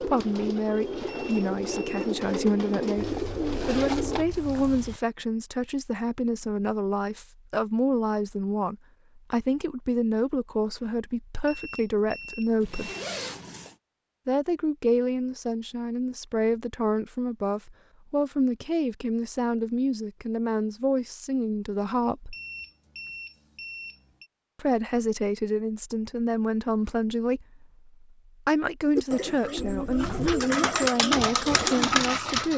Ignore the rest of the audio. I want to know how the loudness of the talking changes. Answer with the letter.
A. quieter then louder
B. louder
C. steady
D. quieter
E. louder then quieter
C.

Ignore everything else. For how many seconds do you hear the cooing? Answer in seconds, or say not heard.
8 s.